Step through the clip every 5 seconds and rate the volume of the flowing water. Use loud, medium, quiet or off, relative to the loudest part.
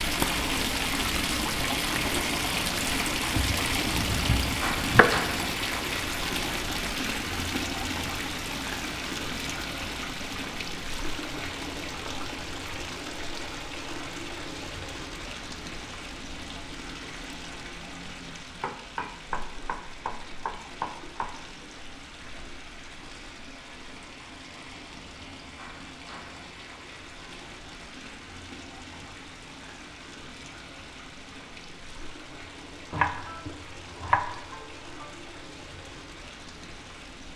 loud, loud, medium, quiet, quiet, quiet, quiet, quiet.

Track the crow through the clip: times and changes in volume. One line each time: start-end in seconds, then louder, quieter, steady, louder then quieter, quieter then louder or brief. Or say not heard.
not heard.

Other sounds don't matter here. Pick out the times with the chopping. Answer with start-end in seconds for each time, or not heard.
3.4-5.1, 18.6-21.4, 32.9-35.1.